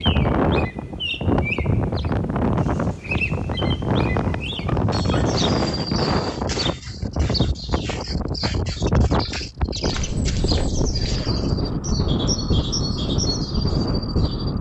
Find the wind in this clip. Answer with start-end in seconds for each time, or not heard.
0.0-14.5.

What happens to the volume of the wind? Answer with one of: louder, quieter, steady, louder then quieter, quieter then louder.
steady.